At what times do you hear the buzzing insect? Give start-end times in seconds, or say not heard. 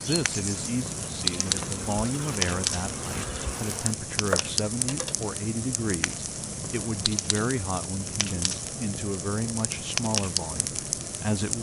0.0-4.0.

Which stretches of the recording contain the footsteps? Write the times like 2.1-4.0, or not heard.
not heard.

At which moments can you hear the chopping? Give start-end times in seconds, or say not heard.
4.2-5.2.